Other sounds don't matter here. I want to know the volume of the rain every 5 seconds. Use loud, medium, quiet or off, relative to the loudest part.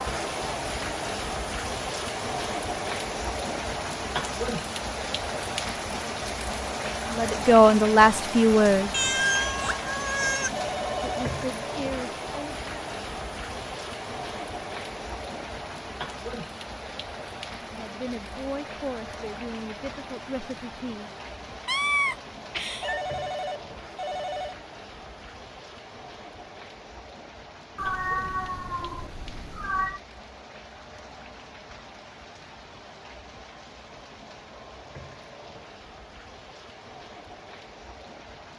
loud, loud, loud, medium, medium, quiet, quiet, quiet.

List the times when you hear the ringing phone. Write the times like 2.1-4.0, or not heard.
10.6-11.3, 22.8-24.6.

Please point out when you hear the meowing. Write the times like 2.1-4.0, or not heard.
8.9-10.5, 21.6-23.1, 27.8-30.0.